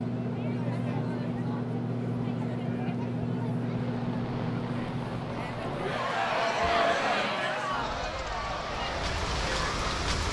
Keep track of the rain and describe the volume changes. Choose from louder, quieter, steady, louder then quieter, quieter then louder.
louder.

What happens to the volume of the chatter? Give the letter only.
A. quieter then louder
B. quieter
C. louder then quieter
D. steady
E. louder
C.